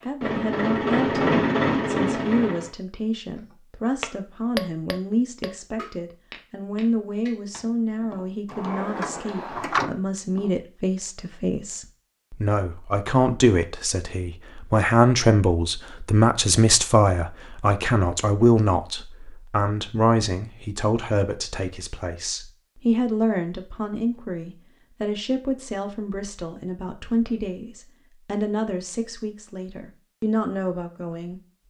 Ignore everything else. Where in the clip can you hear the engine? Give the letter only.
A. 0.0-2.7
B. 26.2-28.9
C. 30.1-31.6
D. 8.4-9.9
A.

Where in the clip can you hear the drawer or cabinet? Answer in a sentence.
The drawer or cabinet can be heard from 8.4 to 9.9 s.